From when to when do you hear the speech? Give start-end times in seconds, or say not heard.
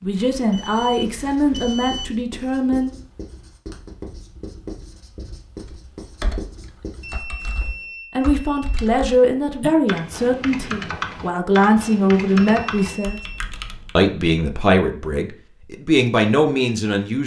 0.0-2.9, 8.2-13.2, 13.9-17.2.